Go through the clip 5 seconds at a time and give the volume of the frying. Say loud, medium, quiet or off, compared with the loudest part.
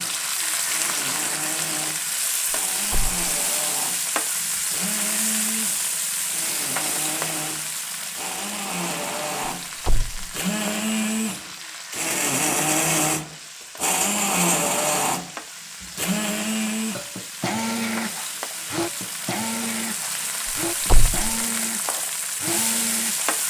loud, loud, medium, medium, loud.